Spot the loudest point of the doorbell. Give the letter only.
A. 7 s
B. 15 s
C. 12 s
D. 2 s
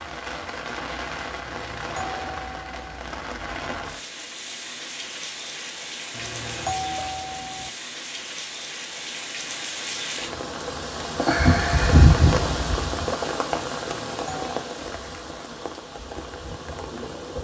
A.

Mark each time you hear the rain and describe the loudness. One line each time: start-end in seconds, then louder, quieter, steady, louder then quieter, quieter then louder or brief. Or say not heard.
0.0-17.3 louder then quieter.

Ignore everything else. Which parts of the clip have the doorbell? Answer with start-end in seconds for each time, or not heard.
1.4-3.0, 6.1-7.7, 14.0-14.6.